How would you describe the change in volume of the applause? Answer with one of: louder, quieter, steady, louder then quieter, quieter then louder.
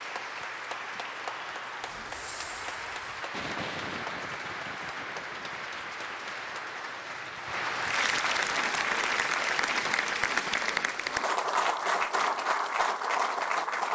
louder.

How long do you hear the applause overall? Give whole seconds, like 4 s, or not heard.
14 s.